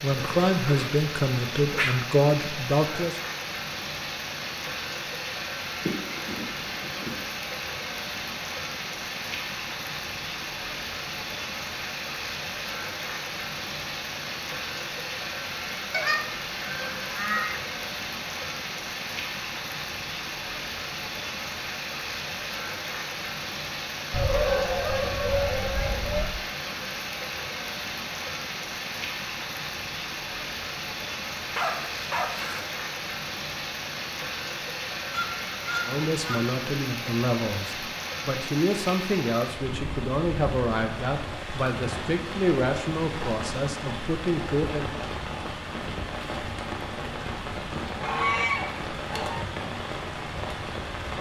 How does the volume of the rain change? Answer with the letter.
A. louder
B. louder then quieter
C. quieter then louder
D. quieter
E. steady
E.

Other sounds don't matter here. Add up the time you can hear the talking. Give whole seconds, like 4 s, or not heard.
12 s.